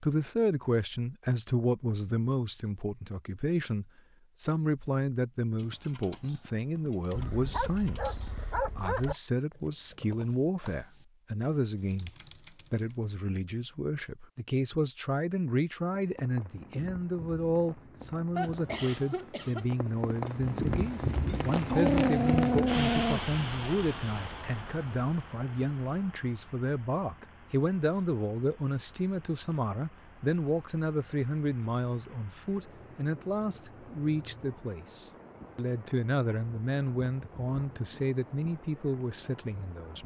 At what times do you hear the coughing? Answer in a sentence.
You can hear the coughing from 18.4 to 19.7 s.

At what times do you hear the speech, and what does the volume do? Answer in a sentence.
You can hear the speech from 0.0 to 12.1 s, at a steady volume; and from 12.7 to 40.0 s, at a steady volume.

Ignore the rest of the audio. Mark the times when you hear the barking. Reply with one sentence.
You can hear the barking from 7.1 to 9.2 s and from 21.6 to 23.2 s.